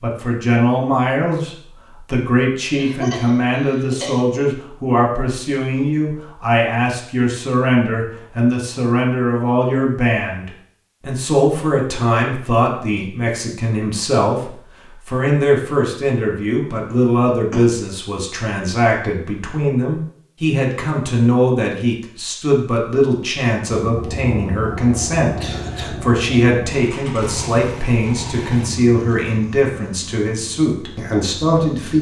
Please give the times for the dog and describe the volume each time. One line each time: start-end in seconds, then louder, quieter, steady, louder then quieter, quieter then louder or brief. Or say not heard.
not heard.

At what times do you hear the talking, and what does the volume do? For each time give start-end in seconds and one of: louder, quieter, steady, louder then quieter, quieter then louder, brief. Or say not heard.
0.0-31.9 steady.